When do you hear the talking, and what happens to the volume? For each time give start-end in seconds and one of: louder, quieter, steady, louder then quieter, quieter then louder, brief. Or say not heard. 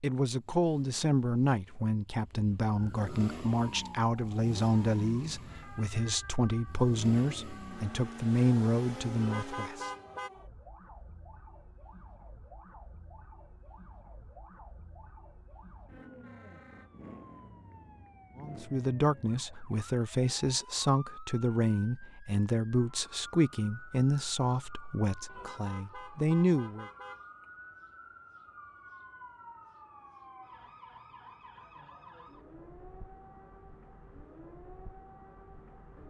0.0-9.9 steady
18.4-26.9 steady.